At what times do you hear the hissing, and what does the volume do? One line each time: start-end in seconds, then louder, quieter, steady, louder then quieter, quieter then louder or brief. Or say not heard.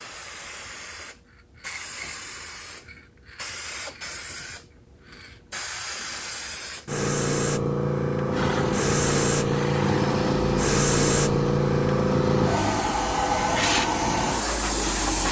0.0-15.2 louder.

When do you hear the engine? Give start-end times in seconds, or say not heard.
8.3-15.2.